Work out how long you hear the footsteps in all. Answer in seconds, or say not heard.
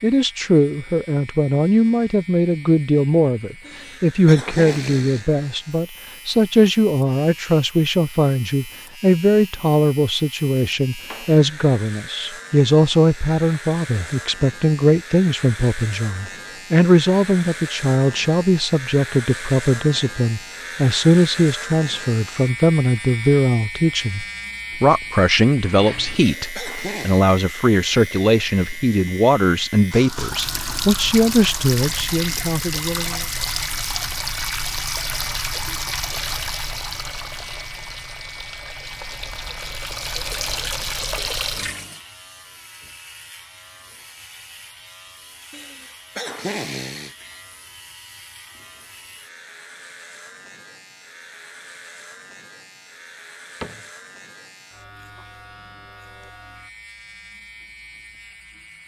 not heard.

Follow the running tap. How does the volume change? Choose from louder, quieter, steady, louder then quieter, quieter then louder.
quieter then louder.